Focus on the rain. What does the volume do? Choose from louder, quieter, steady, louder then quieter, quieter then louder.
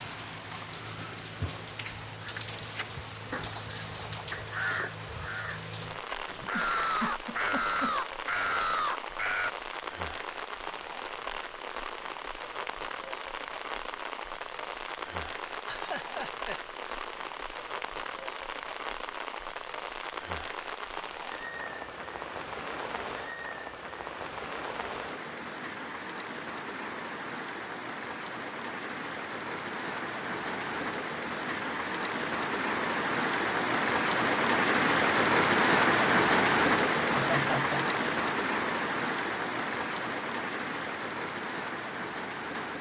louder.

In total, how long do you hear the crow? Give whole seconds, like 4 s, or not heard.
7 s.